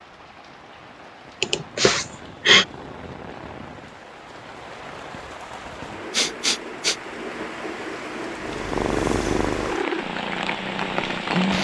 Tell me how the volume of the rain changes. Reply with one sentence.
The volume of the rain goes up.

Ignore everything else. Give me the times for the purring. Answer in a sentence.
The purring can be heard from 8.3 to 11.5 s.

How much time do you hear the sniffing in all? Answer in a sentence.
You can hear the sniffing for 2 seconds altogether.